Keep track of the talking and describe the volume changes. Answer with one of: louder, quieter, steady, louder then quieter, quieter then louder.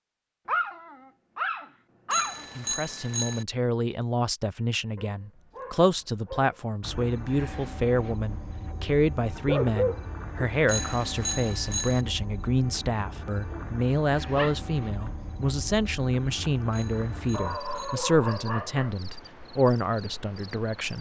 steady.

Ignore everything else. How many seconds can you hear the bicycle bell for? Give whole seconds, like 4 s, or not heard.
4 s.